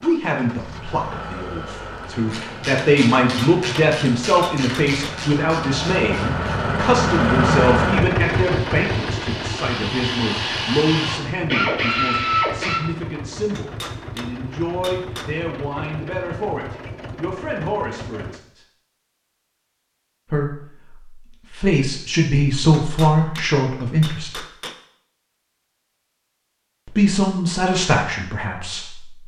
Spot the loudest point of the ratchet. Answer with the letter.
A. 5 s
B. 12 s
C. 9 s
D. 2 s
B.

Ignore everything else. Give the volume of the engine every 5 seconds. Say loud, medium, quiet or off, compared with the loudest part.
quiet, loud, quiet, quiet, off, off.